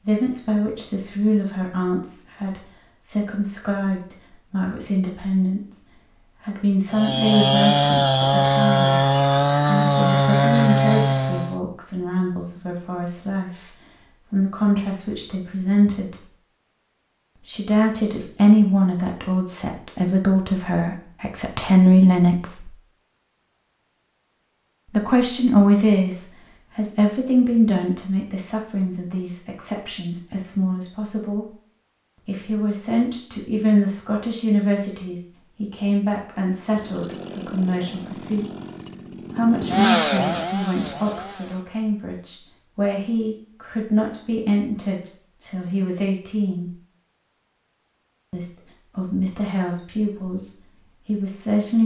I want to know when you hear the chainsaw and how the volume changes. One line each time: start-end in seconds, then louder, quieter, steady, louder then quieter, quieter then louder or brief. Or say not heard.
6.9-11.6 steady
36.5-41.7 louder then quieter.